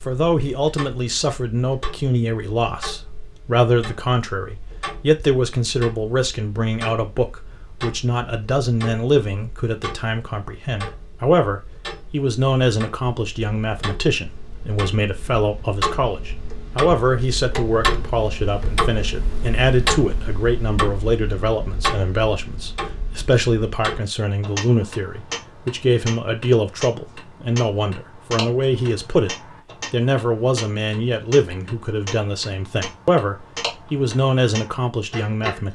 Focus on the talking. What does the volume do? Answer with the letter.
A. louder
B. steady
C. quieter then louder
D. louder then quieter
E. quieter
B.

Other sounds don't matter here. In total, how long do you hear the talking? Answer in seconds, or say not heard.
36 s.